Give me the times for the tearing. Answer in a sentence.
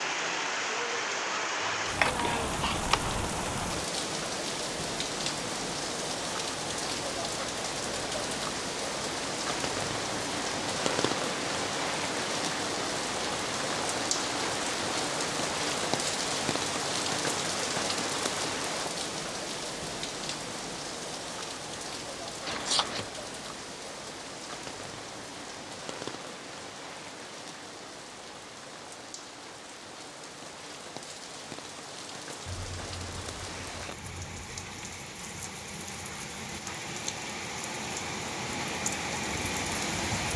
The tearing can't be heard in this clip.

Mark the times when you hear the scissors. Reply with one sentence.
You can hear the scissors from 1.6 to 3.1 s, from 22.4 to 23.1 s and from 32.5 to 35.0 s.